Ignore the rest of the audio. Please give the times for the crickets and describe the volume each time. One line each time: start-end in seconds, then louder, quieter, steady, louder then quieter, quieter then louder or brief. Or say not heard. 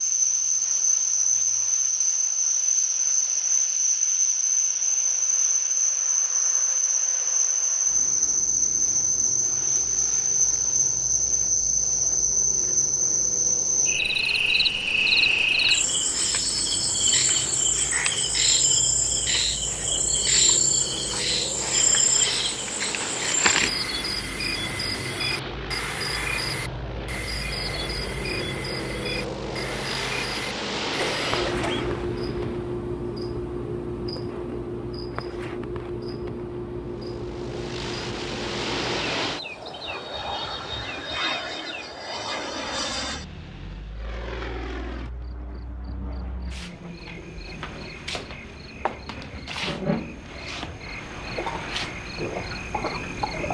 0.0-53.4 quieter.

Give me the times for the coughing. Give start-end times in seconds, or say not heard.
30.9-31.9.